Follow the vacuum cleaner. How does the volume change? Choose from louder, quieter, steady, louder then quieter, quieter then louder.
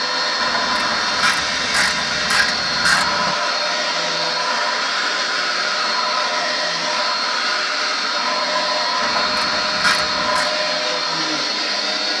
steady.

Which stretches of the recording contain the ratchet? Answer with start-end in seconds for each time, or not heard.
0.3-3.4, 9.0-10.5.